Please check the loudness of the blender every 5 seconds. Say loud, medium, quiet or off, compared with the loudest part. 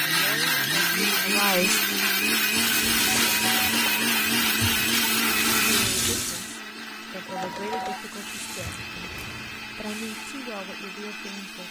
loud, medium, quiet.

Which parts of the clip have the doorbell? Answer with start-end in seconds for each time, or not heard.
3.0-4.2, 7.2-8.0.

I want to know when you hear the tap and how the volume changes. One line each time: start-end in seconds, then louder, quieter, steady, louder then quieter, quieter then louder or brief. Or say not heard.
2.5-6.5 quieter then louder
7.9-10.3 brief.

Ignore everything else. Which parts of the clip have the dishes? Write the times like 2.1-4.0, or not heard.
not heard.